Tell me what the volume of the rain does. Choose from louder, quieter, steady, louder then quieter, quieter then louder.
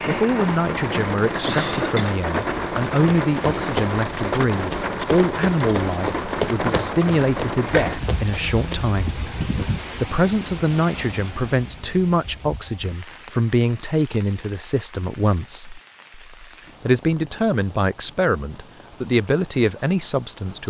quieter.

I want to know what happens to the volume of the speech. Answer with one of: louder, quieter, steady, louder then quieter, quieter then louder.
steady.